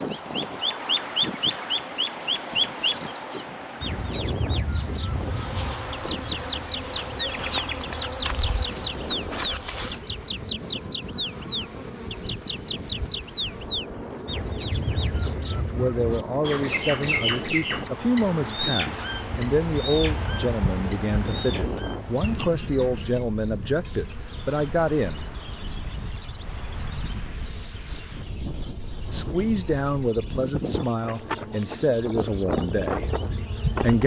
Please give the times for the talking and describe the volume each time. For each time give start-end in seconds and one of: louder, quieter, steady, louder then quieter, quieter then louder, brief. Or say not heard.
15.7-25.3 steady
29.1-34.0 quieter.